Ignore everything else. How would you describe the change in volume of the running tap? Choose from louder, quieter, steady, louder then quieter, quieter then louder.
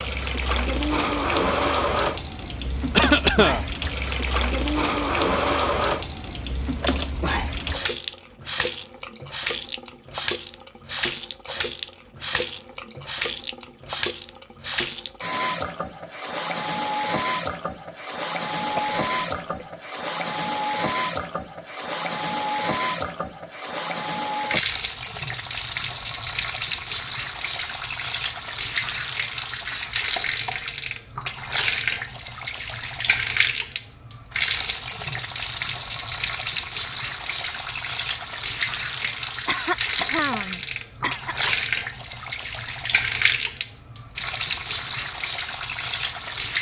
steady.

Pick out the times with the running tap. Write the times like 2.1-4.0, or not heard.
0.0-46.5.